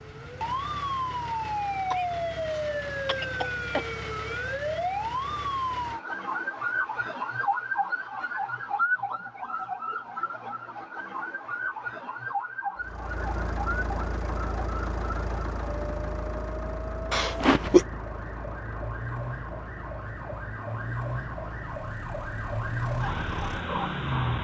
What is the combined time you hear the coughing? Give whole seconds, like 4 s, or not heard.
3 s.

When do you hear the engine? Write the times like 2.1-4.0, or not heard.
12.8-24.3.